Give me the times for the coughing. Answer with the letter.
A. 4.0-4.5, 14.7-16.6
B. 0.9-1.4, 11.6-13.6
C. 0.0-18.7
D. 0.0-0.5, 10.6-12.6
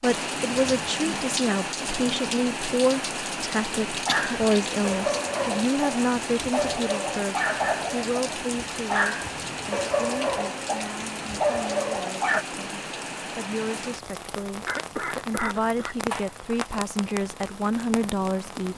A.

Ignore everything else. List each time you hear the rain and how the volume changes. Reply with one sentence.
You can hear the rain from 0.0 to 18.7 s, getting quieter.